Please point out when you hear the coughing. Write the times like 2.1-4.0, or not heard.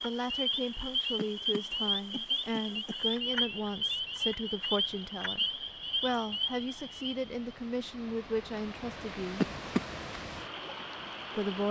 1.1-3.5, 9.4-9.8.